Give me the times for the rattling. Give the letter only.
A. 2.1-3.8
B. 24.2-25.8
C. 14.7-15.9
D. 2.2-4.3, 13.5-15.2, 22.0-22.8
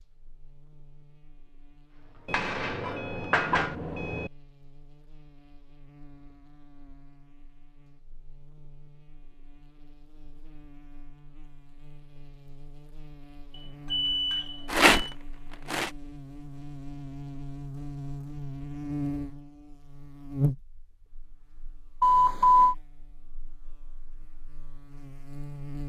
C.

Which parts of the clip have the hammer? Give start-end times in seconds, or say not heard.
2.1-3.8.